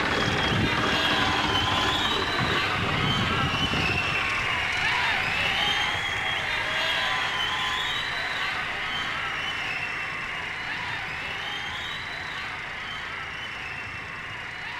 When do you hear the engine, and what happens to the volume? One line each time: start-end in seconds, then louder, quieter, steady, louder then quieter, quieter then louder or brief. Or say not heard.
0.0-14.7 quieter.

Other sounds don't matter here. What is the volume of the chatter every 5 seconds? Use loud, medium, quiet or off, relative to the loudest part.
loud, loud, medium.